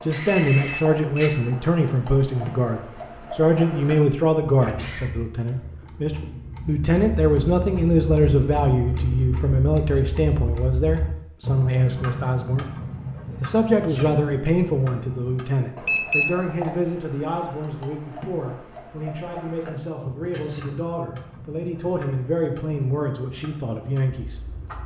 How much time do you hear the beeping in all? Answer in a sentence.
You can hear the beeping for 2 seconds altogether.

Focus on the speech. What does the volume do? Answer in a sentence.
The volume of the speech goes down.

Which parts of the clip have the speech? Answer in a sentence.
You can hear the speech from 0.0 to 12.7 s and from 13.4 to 24.4 s.